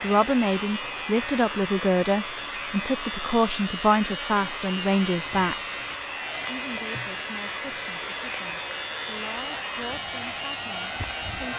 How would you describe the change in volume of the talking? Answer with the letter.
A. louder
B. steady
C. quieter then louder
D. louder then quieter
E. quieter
E.